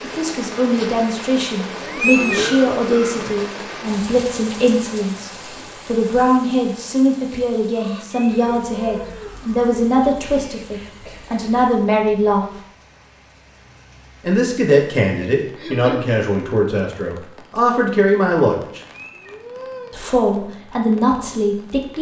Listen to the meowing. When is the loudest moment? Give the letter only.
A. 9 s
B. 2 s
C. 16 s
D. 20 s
B.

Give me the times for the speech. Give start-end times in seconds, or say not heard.
0.0-12.6, 14.2-18.8, 19.9-21.9.